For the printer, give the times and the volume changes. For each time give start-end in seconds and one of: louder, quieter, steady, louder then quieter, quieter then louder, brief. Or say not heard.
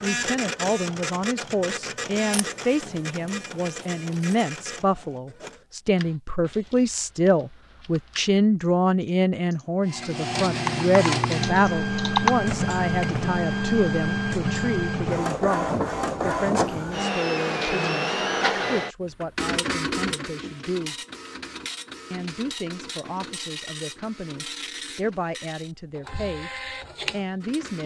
0.0-6.2 quieter
9.8-27.8 quieter.